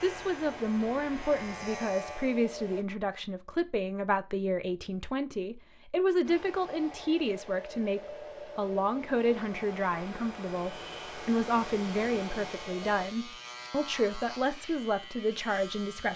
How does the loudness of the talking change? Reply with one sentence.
The volume of the talking stays about the same.